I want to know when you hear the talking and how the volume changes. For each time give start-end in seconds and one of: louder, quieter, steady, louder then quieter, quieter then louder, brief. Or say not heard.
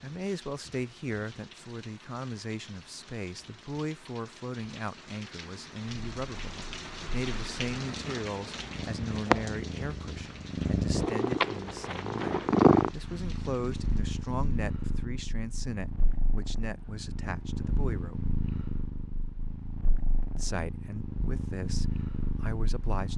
0.0-18.2 steady
20.4-23.1 brief.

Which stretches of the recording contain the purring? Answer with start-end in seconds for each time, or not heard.
5.9-23.1.